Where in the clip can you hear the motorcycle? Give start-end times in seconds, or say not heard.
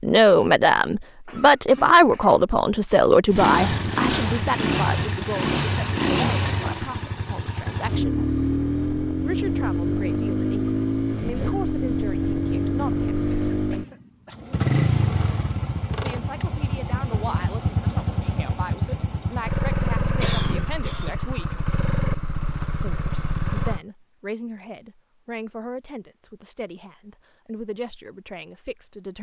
3.3-23.8.